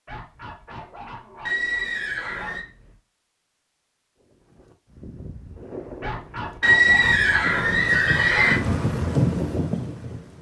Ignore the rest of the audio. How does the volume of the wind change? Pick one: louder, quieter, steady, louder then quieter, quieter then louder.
louder.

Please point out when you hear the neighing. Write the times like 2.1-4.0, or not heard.
1.4-2.6, 6.6-8.6.